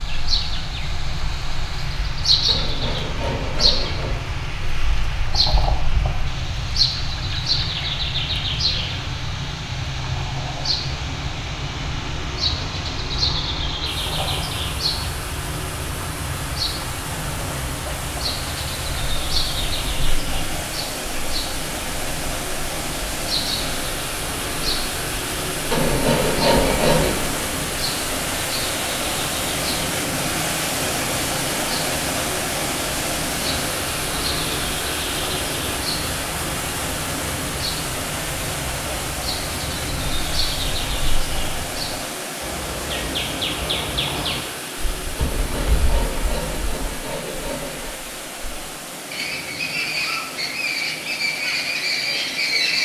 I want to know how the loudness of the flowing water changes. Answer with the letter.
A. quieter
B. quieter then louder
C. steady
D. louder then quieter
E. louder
D.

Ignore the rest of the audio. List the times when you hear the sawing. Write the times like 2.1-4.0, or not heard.
2.5-4.2, 25.7-27.2, 45.1-48.0.